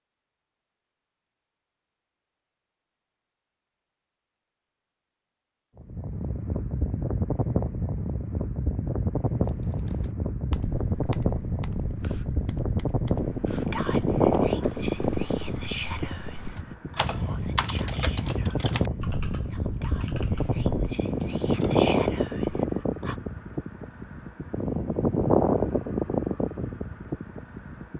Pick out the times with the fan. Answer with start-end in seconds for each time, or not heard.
5.8-27.9.